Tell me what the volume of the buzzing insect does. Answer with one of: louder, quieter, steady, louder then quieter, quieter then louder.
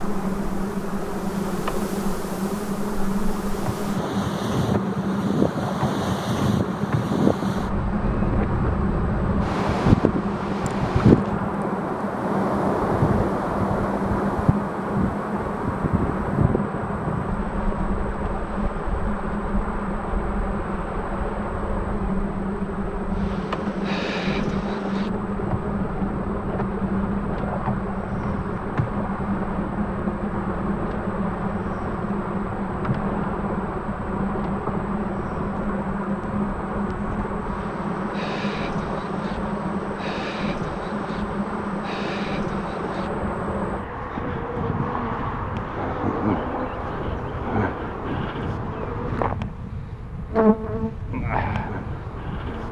steady.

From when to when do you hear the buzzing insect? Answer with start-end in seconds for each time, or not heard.
0.0-52.6.